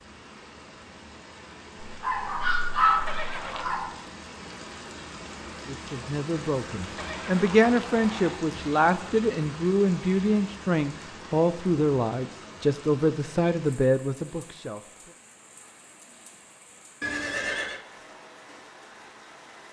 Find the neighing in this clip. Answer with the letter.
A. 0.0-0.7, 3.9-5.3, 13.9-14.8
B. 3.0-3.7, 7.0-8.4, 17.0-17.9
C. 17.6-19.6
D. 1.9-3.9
B.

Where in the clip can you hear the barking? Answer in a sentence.
You can hear the barking from 1.9 to 3.9 s.